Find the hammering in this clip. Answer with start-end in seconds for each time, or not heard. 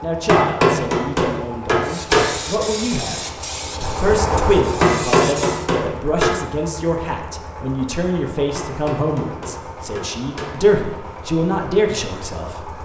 0.2-2.2, 4.8-6.3, 8.6-10.6.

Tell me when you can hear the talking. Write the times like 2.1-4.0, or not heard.
0.0-12.7.